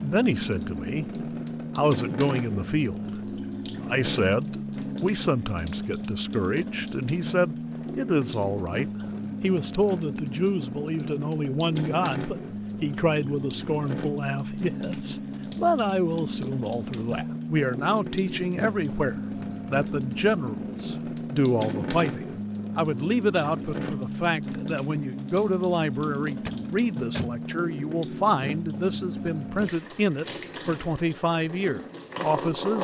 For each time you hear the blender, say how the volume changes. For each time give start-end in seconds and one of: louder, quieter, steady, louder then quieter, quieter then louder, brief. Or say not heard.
not heard.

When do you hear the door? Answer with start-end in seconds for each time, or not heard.
26.4-27.4.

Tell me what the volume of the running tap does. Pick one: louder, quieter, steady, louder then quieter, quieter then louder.
steady.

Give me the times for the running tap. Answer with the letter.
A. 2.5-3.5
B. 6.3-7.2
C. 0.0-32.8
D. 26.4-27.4
C.